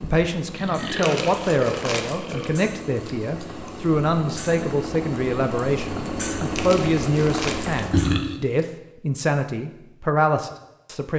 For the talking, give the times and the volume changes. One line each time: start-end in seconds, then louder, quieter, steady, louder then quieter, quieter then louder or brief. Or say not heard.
0.0-11.1 steady.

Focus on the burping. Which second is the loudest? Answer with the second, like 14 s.
8 s.